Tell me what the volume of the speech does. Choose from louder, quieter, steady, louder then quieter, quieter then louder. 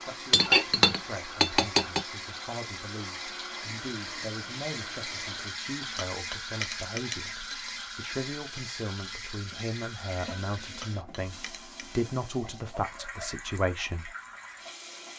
louder.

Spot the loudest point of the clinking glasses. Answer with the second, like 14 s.
1 s.